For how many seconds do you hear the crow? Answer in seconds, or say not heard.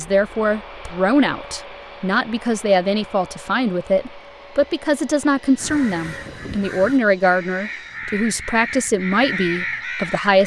5 s.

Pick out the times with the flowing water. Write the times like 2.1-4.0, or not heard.
not heard.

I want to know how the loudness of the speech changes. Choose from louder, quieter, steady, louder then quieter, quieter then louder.
steady.